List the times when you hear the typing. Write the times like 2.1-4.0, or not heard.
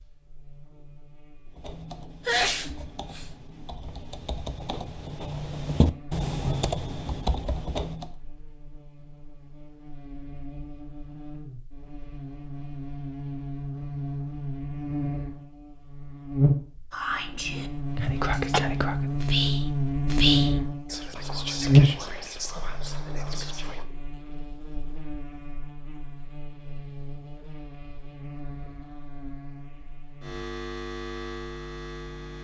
1.4-8.2.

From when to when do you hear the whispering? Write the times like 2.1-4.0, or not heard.
16.9-23.9.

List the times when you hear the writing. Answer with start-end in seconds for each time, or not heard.
not heard.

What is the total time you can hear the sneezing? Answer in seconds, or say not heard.
2 s.